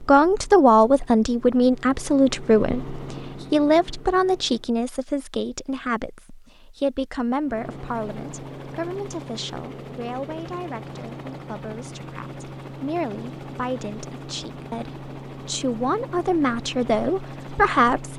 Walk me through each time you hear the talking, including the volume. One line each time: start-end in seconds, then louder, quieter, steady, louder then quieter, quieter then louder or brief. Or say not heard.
0.0-18.1 quieter then louder.